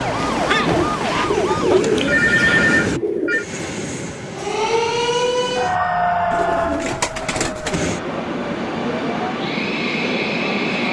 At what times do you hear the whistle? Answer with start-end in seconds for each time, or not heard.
not heard.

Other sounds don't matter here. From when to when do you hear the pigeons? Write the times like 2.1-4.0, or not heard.
0.7-3.5, 6.3-7.9.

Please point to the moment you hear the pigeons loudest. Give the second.
2 s.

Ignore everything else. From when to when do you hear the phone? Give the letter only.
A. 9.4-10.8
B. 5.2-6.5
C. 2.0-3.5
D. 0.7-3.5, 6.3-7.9
C.